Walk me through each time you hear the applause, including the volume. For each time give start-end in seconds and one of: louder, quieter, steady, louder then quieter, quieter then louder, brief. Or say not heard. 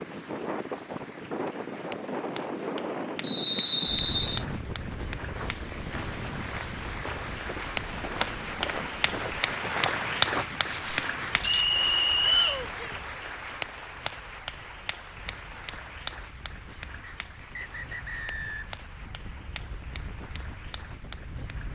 0.0-21.7 louder then quieter.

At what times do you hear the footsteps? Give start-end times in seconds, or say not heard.
5.3-11.7.